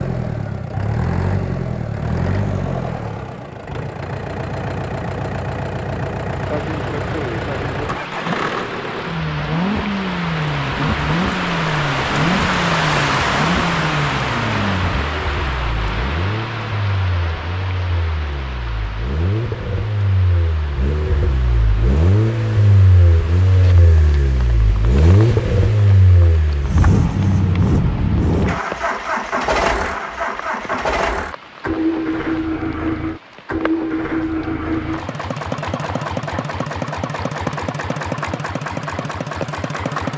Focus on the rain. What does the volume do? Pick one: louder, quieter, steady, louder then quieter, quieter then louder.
quieter.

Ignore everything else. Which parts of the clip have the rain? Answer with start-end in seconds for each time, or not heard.
6.4-39.9.